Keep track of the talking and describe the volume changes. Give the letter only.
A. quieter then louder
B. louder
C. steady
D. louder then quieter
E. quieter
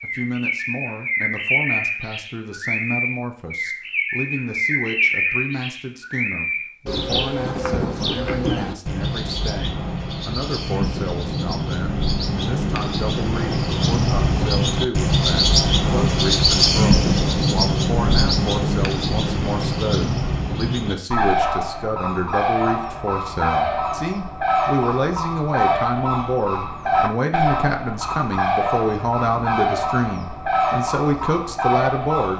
B.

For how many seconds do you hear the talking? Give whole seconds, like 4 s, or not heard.
32 s.